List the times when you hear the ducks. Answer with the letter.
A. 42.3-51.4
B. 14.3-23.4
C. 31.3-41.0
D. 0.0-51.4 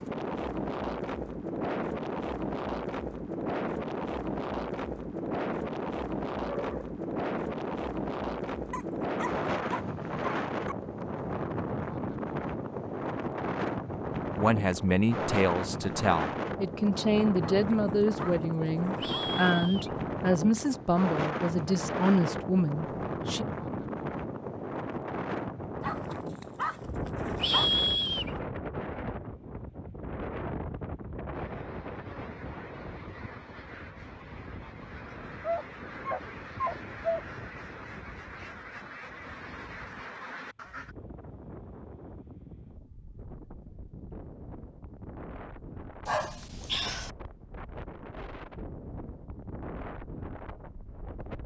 C.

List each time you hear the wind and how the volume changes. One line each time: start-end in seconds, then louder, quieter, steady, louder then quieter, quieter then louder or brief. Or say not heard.
0.0-51.4 quieter.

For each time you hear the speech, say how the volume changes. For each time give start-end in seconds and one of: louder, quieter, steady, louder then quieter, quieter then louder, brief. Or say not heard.
14.3-23.4 steady.